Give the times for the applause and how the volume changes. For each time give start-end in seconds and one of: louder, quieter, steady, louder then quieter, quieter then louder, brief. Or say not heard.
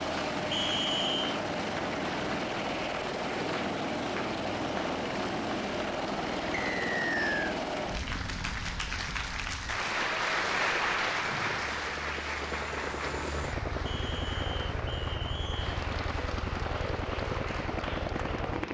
0.0-18.7 louder then quieter.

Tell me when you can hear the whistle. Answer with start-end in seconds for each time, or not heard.
0.5-1.3, 6.5-7.5, 13.8-15.8.